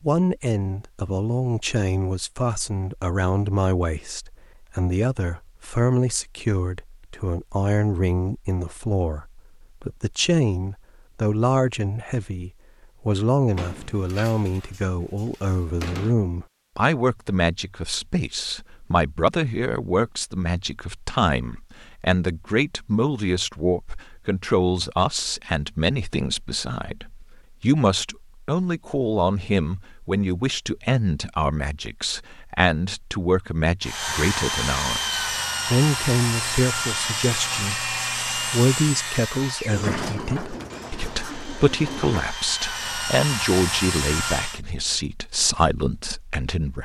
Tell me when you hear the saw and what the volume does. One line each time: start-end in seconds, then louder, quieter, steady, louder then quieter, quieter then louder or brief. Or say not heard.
33.8-44.6 quieter then louder.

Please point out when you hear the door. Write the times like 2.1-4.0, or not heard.
13.6-16.1, 39.7-42.2.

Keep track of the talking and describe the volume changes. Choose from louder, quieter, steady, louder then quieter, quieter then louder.
steady.